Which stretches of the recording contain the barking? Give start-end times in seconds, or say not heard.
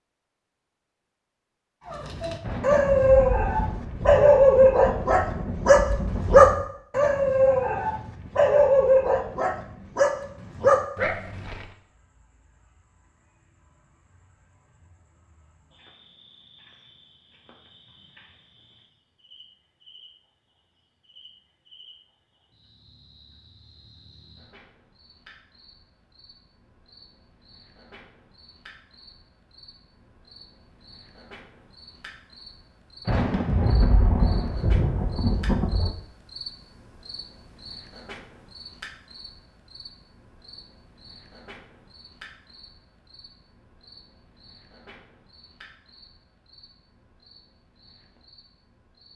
1.9-11.7.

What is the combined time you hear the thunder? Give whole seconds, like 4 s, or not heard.
7 s.